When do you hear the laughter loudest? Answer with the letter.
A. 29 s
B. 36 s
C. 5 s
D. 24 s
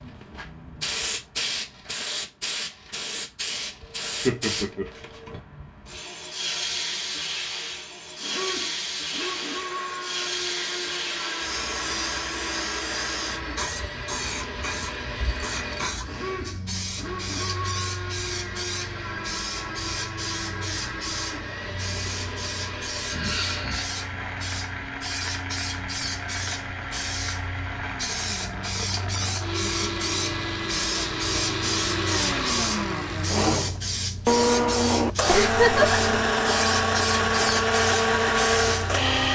B.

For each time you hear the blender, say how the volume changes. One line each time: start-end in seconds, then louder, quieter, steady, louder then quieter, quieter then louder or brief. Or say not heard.
8.2-39.3 louder.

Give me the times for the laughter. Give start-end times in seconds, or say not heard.
3.8-5.3, 23.1-23.9, 35.2-36.0.